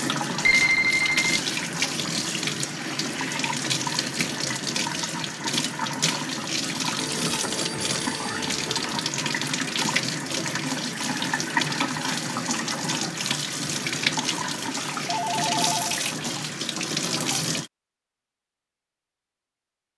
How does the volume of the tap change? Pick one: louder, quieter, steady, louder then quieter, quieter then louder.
steady.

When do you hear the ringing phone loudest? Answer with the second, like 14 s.
1 s.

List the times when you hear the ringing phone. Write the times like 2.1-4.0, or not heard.
0.4-1.4, 7.0-9.0, 15.1-16.0.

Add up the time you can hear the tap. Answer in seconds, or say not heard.
18 s.